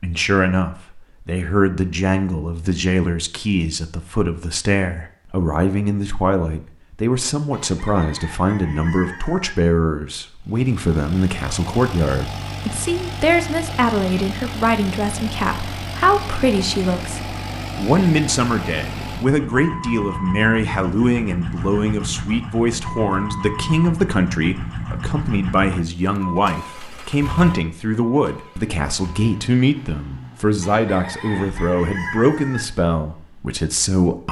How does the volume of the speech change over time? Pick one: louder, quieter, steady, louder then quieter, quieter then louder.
steady.